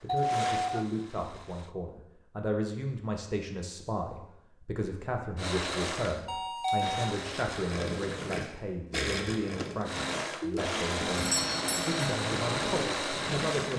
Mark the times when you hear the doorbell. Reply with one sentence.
You can hear the doorbell from 0.1 to 0.8 s, from 6.2 to 7.2 s and from 11.2 to 12.1 s.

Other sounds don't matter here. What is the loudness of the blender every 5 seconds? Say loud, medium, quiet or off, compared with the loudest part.
medium, medium, loud.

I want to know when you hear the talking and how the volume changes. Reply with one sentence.
You can hear the talking from 0.0 to 13.7 s, at a steady volume.